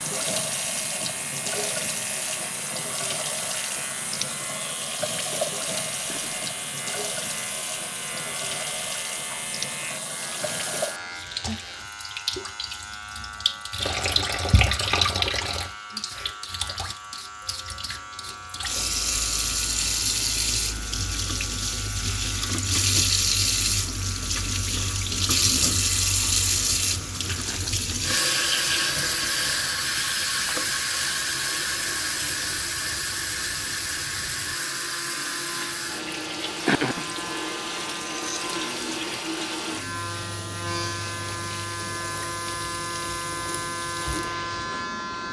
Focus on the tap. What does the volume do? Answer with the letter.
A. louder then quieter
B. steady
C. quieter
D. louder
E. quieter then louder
A.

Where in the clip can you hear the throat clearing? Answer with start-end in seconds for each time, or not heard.
6.0-6.5, 27.4-27.9, 36.6-37.1.